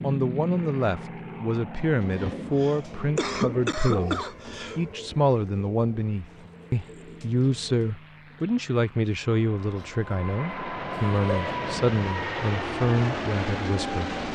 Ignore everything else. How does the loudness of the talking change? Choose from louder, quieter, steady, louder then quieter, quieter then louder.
steady.